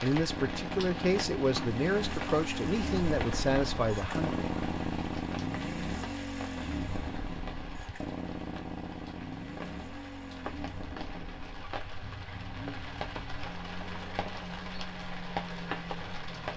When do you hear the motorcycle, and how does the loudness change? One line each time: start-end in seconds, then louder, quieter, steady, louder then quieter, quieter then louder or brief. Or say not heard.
0.1-16.5 quieter.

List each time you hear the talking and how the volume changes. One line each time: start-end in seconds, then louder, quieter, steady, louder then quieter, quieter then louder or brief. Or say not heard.
0.0-4.4 steady.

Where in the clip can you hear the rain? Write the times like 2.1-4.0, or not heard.
0.0-16.5.